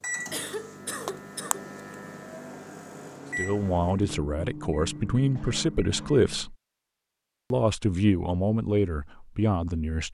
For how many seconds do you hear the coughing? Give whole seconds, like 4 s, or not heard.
2 s.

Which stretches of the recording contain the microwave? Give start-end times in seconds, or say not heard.
0.0-6.5.